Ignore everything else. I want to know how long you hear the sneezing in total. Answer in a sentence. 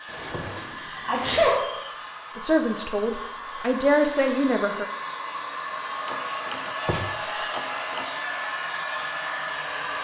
The sneezing can be heard for 2 seconds in total.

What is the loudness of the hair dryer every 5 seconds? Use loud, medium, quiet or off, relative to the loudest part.
medium, loud.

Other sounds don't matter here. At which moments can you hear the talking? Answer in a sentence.
The talking can be heard from 2.4 to 4.9 s.